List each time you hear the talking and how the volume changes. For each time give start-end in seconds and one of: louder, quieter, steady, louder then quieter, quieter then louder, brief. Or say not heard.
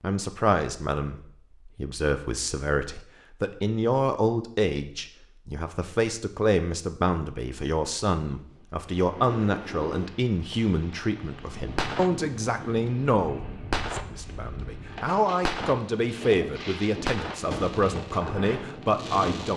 0.0-19.5 steady.